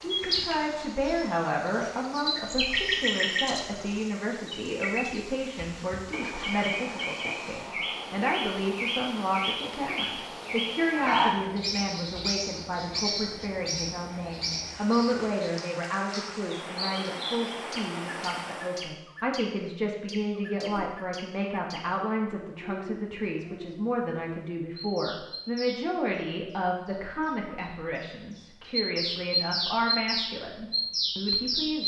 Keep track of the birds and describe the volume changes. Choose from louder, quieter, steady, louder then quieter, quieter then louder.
quieter then louder.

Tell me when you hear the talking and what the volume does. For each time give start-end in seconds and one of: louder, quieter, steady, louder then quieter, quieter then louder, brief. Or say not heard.
0.0-31.8 steady.